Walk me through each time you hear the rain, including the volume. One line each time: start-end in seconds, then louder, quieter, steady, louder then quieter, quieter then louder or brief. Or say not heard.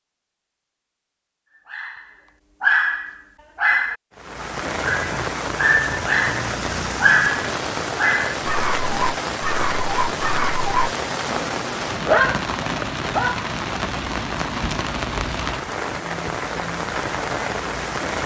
4.2-18.2 steady.